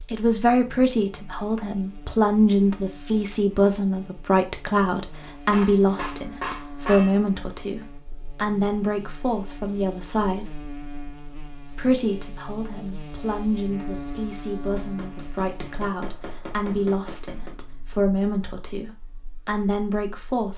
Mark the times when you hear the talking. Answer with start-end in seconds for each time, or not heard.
0.1-10.4, 11.7-20.5.